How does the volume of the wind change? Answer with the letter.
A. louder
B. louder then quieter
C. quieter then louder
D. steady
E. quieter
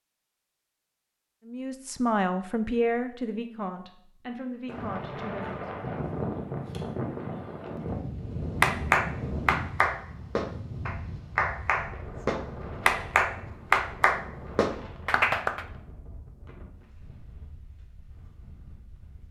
E.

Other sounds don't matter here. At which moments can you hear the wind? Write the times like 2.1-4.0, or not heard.
4.7-19.2.